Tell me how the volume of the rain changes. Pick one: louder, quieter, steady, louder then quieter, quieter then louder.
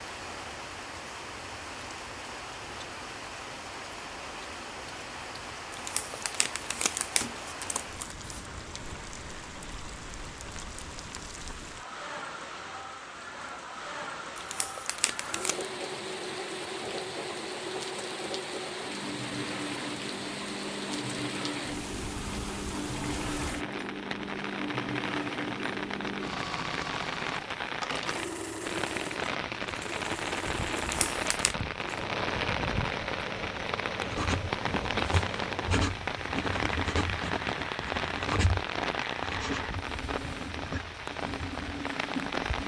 louder.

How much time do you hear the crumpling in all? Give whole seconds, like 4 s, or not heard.
5 s.